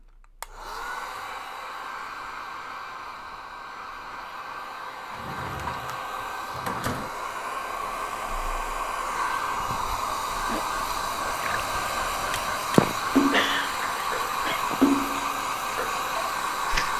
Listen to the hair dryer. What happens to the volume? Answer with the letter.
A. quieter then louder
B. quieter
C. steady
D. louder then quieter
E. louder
E.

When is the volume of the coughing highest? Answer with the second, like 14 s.
13 s.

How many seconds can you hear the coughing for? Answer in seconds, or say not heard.
2 s.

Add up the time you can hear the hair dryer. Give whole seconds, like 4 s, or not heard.
17 s.